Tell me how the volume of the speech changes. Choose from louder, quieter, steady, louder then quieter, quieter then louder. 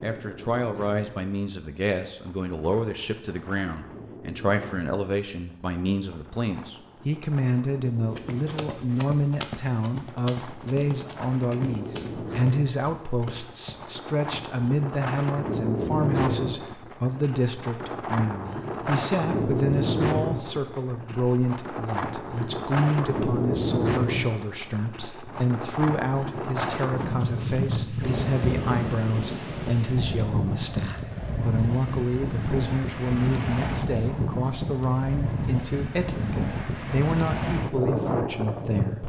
steady.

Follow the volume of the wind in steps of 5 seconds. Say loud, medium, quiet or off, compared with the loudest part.
quiet, quiet, medium, loud, loud, loud, loud, loud.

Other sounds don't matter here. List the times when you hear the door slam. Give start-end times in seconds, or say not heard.
not heard.